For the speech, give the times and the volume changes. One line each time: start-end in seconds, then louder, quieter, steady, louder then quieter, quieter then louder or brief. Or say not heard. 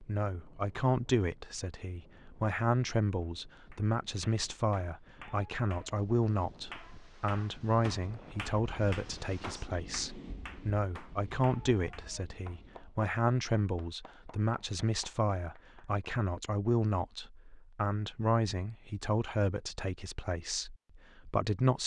0.0-21.8 steady.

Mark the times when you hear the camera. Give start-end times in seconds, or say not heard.
not heard.